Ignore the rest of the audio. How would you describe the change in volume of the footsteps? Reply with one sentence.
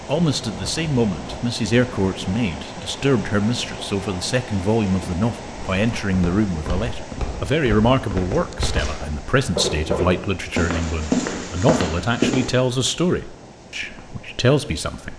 The loudness of the footsteps goes up.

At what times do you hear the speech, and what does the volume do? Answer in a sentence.
The speech can be heard from 0.1 to 15.1 s, at a steady volume.